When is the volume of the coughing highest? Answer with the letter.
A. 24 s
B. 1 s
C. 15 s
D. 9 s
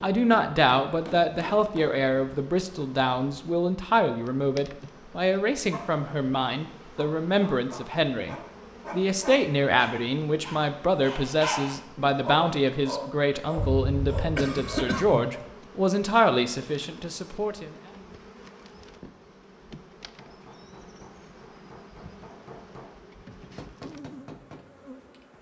C.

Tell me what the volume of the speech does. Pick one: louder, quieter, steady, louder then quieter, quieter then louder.
steady.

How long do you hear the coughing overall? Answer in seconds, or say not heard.
2 s.